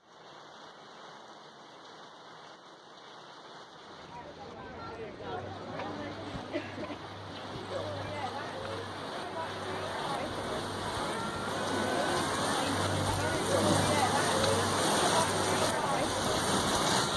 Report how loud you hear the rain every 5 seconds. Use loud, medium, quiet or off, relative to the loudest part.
quiet, quiet, loud, loud.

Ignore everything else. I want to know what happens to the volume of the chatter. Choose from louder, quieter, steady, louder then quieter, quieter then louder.
louder.